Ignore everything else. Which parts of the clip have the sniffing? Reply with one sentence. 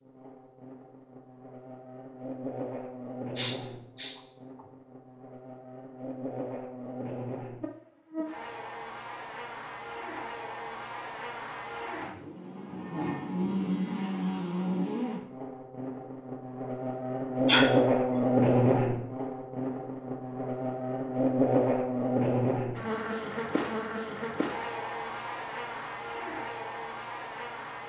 You can hear the sniffing from 3.4 to 4.7 s and from 17.4 to 18.2 s.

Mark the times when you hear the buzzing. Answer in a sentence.
The buzzing can be heard from 0.0 to 27.8 s.